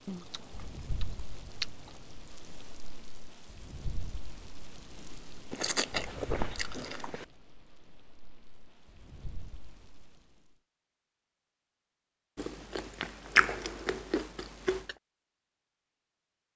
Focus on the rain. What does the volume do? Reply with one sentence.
The loudness of the rain goes down.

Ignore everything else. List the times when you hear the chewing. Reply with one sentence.
The chewing can be heard from 0.1 to 2.1 s, from 5.5 to 7.2 s and from 12.3 to 14.9 s.